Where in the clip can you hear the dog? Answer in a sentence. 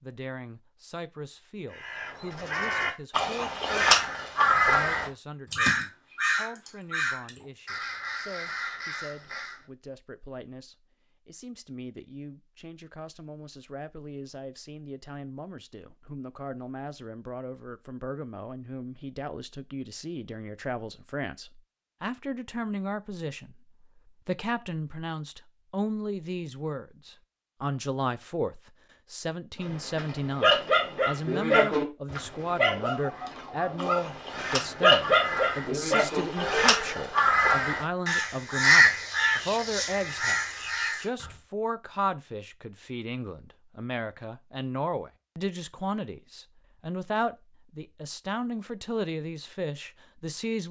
The dog can be heard from 29.6 to 37.2 s.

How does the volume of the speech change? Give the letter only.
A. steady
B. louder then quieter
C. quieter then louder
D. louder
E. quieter
D.